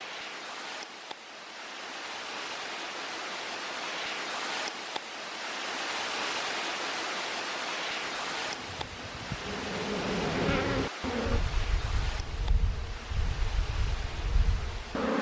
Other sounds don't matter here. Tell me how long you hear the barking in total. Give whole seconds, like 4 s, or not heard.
not heard.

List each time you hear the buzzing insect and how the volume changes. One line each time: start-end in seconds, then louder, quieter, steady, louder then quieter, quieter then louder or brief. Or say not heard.
8.0-15.1 louder then quieter.